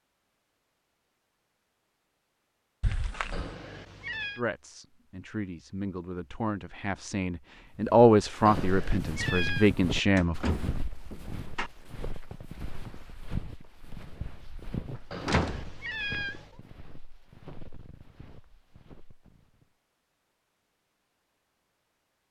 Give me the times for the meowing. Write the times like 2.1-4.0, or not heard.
3.3-4.4, 8.4-9.7, 15.1-16.6.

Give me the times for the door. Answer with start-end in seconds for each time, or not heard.
2.8-3.5, 10.2-11.7, 15.2-15.7.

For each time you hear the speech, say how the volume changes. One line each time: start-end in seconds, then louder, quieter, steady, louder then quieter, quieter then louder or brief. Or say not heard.
4.3-10.3 louder then quieter.